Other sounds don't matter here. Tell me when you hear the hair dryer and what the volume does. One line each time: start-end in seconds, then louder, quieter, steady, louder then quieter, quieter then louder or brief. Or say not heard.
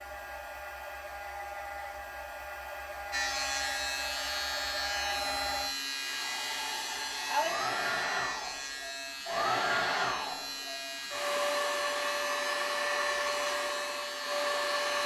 0.0-15.0 louder.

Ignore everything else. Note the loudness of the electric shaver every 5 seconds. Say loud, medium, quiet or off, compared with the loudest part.
loud, loud, medium.